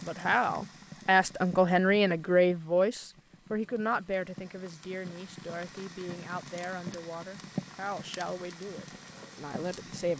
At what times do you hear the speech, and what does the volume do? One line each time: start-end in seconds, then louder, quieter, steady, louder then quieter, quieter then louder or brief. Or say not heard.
0.0-10.1 quieter.